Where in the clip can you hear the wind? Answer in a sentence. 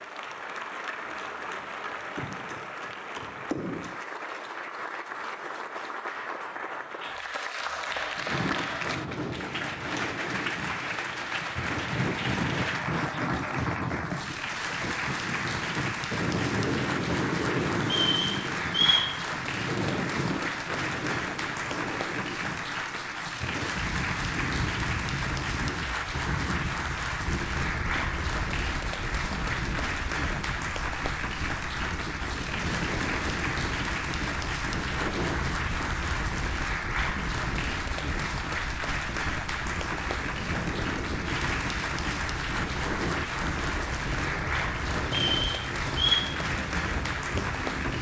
The wind can be heard from 8.2 to 47.9 s.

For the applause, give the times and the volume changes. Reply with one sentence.
The applause can be heard from 0.0 to 47.9 s, at a steady volume.